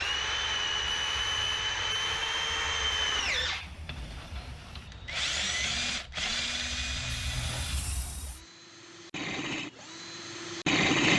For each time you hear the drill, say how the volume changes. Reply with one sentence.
The drill can be heard from 0.0 to 11.1 s, getting quieter.